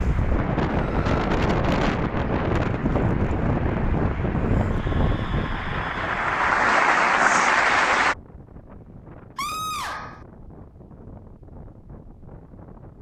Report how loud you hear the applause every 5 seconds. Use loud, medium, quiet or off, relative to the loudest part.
quiet, loud, off.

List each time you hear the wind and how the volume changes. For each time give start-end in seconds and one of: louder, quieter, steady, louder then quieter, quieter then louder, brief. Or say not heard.
0.0-12.9 quieter.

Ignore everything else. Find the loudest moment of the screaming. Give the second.
10 s.